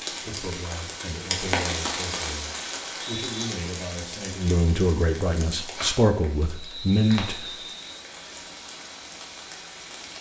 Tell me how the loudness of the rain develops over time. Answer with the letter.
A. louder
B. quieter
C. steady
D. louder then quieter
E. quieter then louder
B.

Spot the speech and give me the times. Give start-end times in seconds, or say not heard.
0.1-7.5.